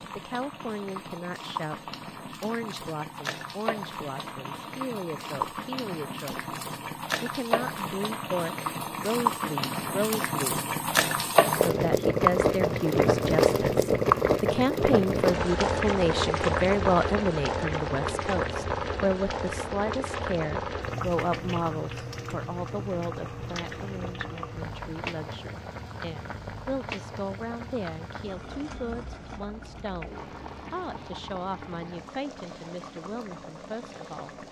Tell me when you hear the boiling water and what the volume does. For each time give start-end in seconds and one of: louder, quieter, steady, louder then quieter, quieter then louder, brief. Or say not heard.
0.0-34.4 louder then quieter.